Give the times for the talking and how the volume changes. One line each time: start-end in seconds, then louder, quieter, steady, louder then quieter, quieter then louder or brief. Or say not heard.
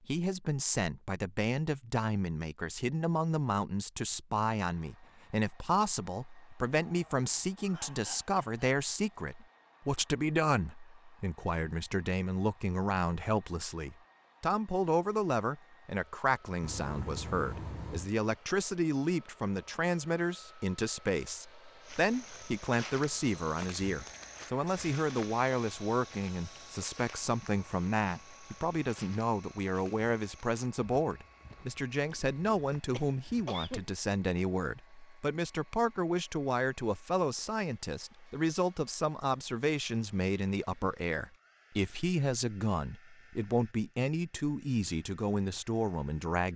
0.1-46.5 steady.